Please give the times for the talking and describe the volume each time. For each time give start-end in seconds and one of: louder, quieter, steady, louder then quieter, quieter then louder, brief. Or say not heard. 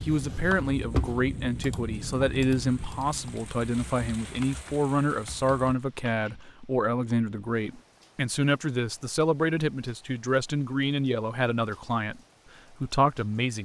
0.0-12.2 steady
12.8-13.6 brief.